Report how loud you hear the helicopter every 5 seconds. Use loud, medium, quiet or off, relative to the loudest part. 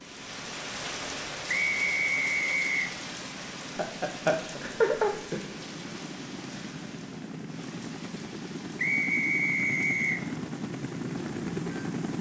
quiet, medium, loud.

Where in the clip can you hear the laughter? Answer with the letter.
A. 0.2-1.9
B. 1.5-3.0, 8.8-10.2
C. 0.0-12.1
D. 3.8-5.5
D.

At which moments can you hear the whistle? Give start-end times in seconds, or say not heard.
1.5-3.0, 8.8-10.2.